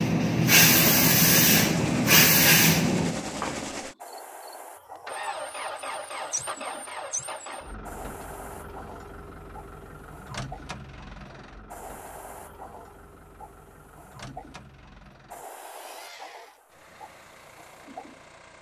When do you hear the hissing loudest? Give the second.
1 s.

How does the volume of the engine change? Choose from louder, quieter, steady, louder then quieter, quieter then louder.
quieter.